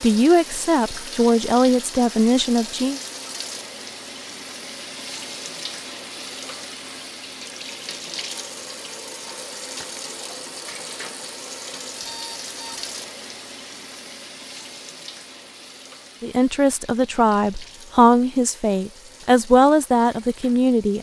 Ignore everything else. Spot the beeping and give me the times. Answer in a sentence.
The beeping can be heard from 12.0 to 12.9 s.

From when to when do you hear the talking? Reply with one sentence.
The talking can be heard from 0.0 to 3.0 s and from 16.2 to 20.9 s.